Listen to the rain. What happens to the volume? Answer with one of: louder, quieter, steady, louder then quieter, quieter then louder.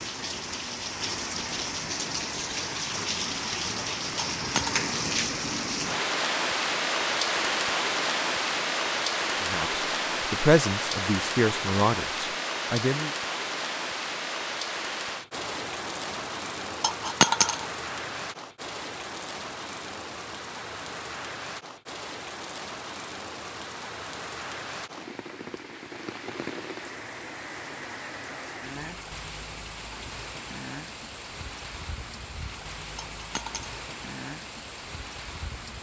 quieter.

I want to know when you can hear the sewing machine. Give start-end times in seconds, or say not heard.
not heard.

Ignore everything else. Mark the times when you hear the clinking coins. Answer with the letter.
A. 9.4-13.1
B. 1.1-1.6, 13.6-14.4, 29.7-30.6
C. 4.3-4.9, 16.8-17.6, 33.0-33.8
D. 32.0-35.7
C.